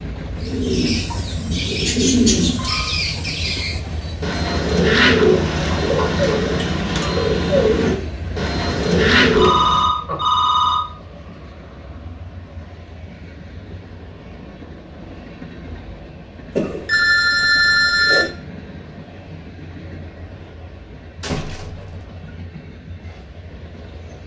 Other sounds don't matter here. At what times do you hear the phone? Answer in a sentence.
The phone can be heard from 2.2 to 3.0 s, from 9.3 to 10.8 s and from 16.6 to 18.3 s.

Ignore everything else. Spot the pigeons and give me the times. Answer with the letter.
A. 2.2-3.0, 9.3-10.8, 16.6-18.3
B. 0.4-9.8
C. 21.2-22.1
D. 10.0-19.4
B.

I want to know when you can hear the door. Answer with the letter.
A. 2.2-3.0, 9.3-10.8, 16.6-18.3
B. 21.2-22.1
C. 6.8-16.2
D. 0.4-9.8
B.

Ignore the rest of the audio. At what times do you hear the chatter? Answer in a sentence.
The chatter can't be heard in this clip.